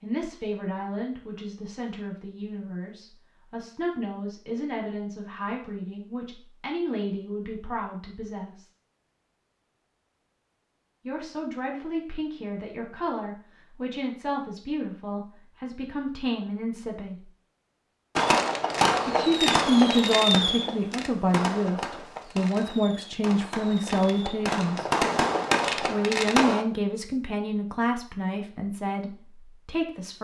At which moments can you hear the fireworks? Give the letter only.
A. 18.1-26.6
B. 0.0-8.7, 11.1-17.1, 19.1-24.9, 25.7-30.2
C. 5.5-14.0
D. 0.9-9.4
A.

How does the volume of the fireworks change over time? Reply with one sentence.
The volume of the fireworks goes down, then up.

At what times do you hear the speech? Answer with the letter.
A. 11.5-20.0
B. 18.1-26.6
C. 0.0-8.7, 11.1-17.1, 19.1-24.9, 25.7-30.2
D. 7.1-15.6
C.